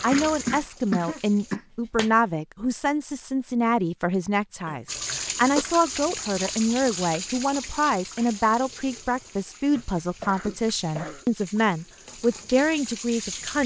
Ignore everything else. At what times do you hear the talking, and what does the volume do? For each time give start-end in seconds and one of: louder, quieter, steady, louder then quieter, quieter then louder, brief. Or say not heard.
0.0-13.6 steady.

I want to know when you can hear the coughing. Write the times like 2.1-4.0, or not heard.
0.1-2.1, 4.7-5.7, 9.8-11.2.